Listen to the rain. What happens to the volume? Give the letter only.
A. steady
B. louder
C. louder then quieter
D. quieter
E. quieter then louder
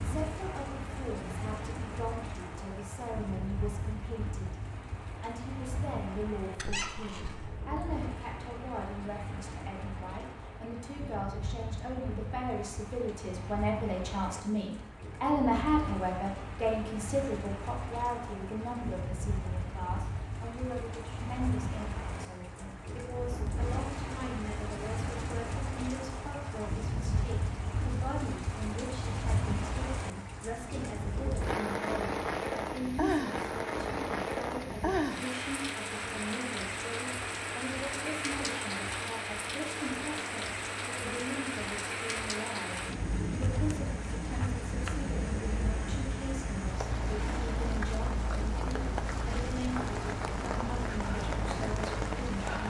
B.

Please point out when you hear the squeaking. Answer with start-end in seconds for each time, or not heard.
6.5-7.5.